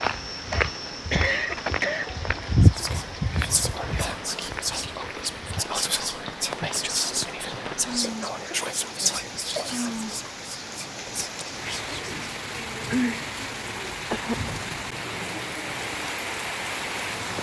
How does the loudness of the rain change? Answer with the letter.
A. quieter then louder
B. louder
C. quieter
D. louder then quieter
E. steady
B.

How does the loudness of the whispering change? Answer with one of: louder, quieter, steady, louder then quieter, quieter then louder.
quieter.